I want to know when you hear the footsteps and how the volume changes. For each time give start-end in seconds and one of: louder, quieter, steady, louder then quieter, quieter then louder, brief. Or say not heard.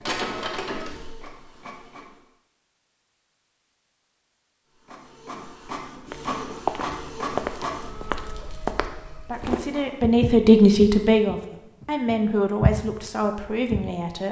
6.1-13.9 quieter then louder.